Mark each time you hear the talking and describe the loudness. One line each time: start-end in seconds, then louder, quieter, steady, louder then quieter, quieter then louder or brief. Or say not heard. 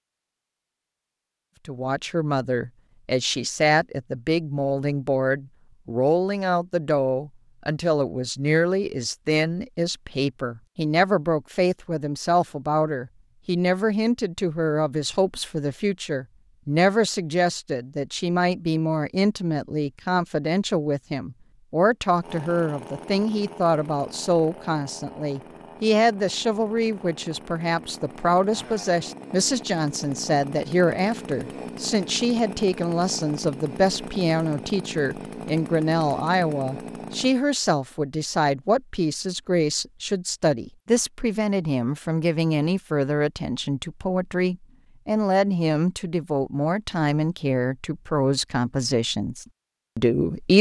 1.6-50.5 steady.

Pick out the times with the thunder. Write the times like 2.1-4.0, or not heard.
not heard.